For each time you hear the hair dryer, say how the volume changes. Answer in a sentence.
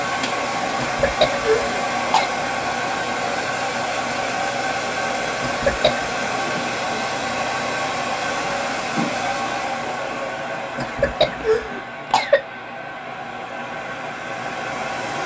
The hair dryer can be heard from 0.0 to 15.2 s, getting quieter.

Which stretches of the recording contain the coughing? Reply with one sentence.
You can hear the coughing from 0.8 to 2.2 s, from 5.4 to 6.1 s and from 10.8 to 12.4 s.